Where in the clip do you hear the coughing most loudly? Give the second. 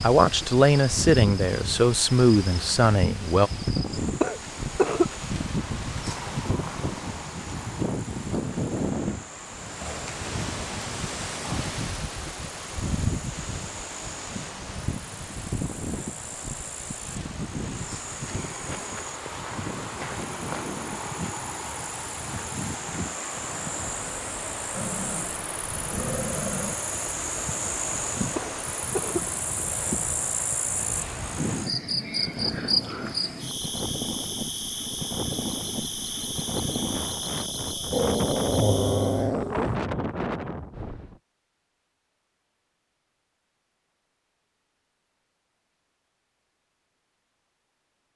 5 s.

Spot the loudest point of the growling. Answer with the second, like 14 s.
39 s.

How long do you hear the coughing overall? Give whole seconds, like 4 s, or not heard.
2 s.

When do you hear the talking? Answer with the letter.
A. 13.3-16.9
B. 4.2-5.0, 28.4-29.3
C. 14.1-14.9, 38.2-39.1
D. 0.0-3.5
D.